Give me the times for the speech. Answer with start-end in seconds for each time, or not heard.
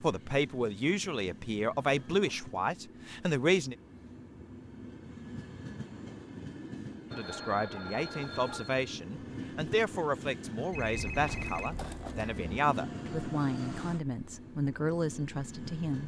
0.0-3.8, 7.1-16.0.